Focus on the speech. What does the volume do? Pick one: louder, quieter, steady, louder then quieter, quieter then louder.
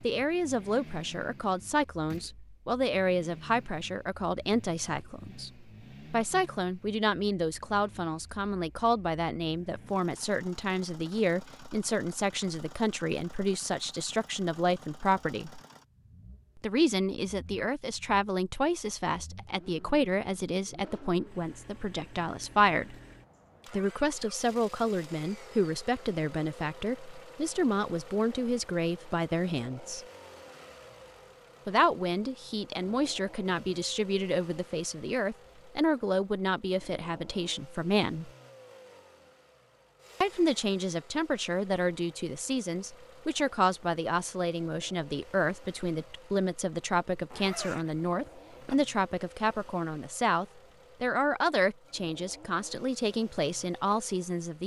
steady.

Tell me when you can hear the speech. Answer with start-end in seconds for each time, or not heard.
0.0-15.6, 16.6-22.9, 23.7-30.1, 31.6-38.3, 40.2-54.6.